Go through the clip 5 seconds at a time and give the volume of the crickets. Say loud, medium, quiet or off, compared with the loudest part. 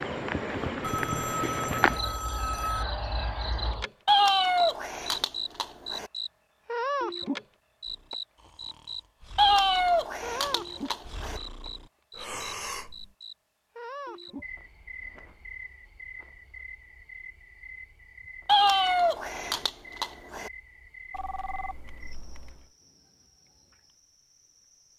loud, loud, medium, quiet, quiet.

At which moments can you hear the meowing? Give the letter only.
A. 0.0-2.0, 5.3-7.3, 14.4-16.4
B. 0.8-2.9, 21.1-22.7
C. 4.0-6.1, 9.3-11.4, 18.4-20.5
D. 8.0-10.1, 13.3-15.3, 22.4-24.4
C.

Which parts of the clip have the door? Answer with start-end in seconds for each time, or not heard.
not heard.